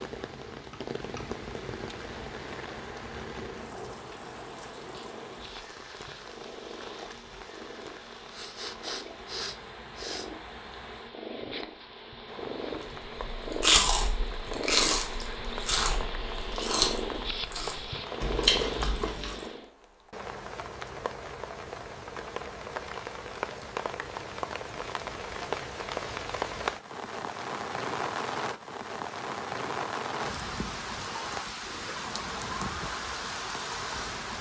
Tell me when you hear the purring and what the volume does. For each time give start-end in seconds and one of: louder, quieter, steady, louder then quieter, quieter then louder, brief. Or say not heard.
0.1-19.7 louder.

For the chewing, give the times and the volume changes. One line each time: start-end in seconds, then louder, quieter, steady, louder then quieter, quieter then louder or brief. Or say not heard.
13.1-19.5 quieter then louder.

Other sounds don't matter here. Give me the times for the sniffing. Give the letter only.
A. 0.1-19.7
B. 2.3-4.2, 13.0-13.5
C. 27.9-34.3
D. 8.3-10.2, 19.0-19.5
D.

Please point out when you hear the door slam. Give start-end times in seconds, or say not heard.
not heard.